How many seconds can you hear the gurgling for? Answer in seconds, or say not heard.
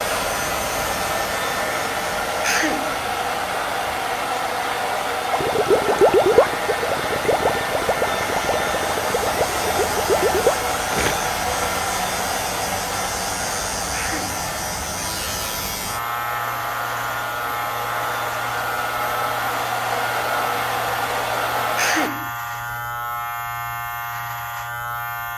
6 s.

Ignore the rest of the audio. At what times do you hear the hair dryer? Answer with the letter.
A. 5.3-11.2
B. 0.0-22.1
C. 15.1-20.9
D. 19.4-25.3
B.